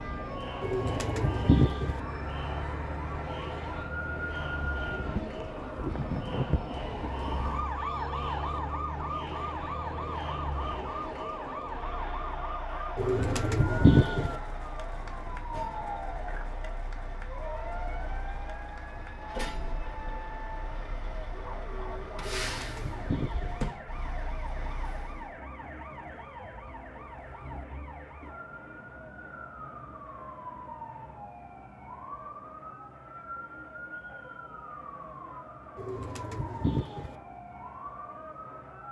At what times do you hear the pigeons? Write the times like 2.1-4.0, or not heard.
0.6-2.0, 12.9-14.3, 22.2-23.6, 35.8-37.1.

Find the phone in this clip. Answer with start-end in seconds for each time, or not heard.
not heard.